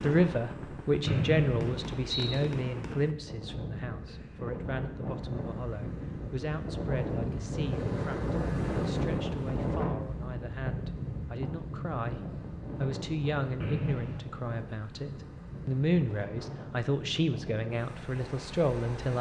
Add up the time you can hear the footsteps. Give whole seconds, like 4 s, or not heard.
not heard.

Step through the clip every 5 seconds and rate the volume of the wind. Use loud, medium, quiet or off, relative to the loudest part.
medium, loud, medium, medium.